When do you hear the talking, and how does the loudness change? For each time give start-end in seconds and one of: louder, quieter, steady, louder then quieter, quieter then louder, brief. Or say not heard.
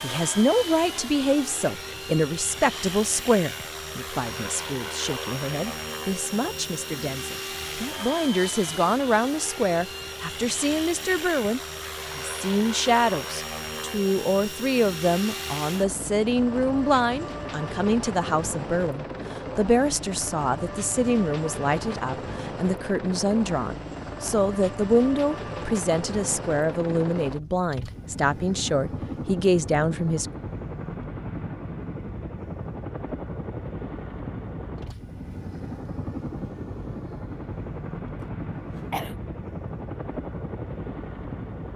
0.0-30.3 steady.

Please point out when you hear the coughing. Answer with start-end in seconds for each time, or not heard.
38.1-39.1.